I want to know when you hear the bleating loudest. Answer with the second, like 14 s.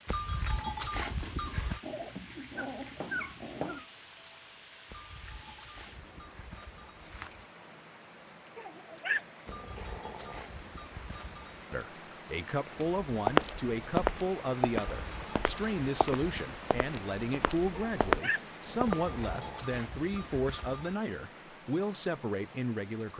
1 s.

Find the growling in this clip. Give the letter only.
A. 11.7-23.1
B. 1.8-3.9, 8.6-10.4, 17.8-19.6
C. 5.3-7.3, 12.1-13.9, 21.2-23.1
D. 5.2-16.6
B.